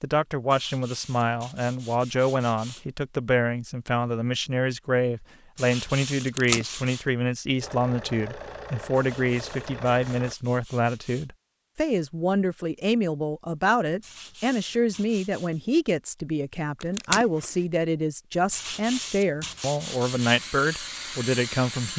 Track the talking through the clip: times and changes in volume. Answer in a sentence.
The talking can be heard from 0.0 to 21.9 s, at a steady volume.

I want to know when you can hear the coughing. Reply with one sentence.
The coughing can't be heard in this clip.